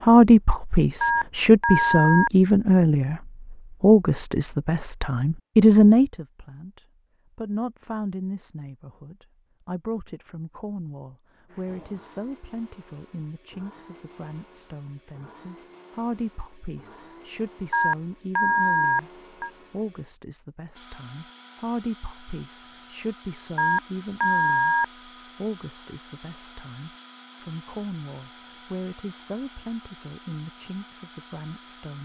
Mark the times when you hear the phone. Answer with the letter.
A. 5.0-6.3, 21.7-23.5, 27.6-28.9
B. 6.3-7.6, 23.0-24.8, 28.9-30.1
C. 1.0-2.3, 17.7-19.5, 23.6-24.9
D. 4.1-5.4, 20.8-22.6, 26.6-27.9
C.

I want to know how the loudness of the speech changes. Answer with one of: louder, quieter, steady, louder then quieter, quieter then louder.
quieter.